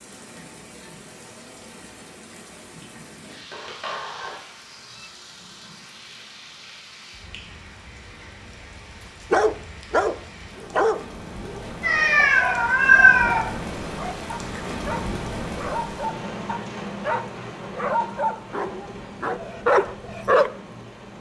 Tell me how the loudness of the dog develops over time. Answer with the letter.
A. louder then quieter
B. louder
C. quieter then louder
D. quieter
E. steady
C.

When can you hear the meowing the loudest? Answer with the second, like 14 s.
13 s.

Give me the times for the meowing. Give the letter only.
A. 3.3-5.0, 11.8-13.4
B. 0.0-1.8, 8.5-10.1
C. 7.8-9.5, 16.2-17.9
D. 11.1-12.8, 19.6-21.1
A.